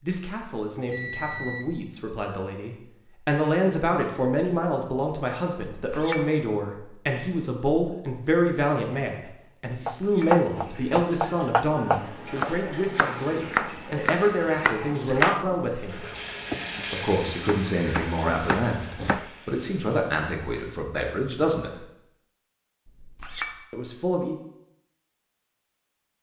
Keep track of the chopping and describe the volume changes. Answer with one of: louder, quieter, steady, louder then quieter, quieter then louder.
quieter.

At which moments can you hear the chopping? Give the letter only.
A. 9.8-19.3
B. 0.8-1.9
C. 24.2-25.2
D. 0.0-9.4
A.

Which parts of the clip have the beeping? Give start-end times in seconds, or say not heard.
0.8-1.9.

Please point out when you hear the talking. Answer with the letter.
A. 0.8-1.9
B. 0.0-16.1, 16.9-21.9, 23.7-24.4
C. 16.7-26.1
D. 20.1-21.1
B.